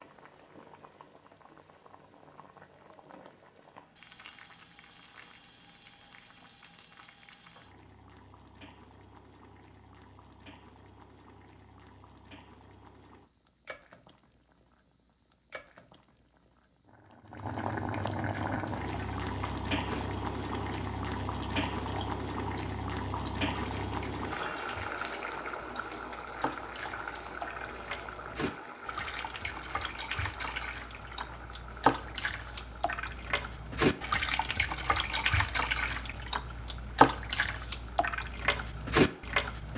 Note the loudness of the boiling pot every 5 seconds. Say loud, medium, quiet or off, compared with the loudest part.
quiet, quiet, quiet, loud, loud, medium, quiet, quiet.